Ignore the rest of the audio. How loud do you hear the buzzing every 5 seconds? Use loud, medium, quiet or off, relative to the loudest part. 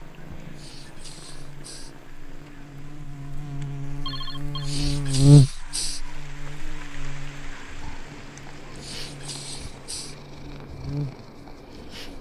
quiet, loud, quiet.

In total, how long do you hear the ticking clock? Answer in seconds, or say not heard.
not heard.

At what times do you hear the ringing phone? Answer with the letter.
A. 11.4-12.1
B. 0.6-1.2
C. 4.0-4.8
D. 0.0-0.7
C.